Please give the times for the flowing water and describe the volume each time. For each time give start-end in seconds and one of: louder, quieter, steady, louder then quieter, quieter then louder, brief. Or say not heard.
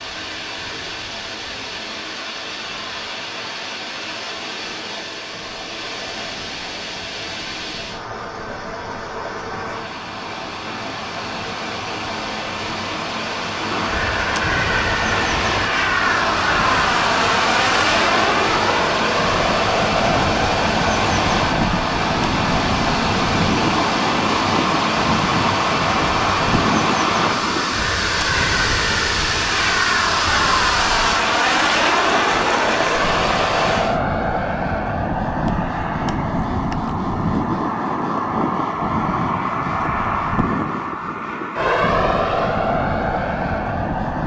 0.0-34.0 louder.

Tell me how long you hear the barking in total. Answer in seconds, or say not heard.
not heard.